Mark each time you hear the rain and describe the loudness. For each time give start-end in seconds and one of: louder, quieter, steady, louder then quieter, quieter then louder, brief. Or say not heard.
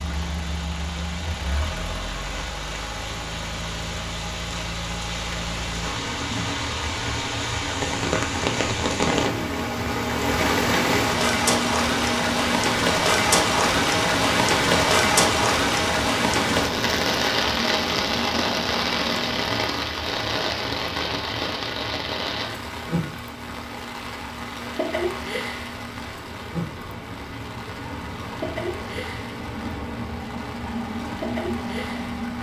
0.0-32.3 louder then quieter.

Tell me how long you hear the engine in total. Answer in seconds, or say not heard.
32 s.